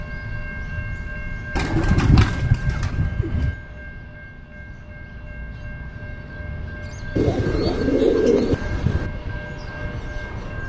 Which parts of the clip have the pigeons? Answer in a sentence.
You can hear the pigeons from 1.6 to 3.5 s and from 7.2 to 9.1 s.